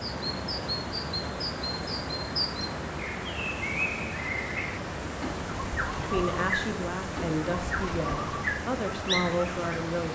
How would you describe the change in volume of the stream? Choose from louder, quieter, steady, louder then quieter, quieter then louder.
steady.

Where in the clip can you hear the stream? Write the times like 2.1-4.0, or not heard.
0.0-10.1.